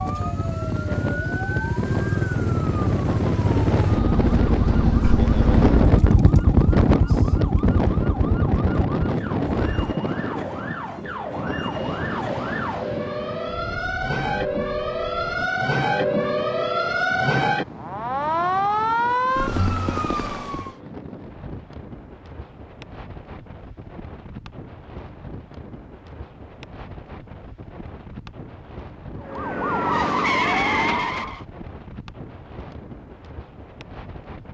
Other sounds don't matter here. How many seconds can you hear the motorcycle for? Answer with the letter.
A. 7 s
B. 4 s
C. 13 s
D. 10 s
D.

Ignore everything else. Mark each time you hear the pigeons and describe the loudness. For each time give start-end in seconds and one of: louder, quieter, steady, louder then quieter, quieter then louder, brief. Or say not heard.
not heard.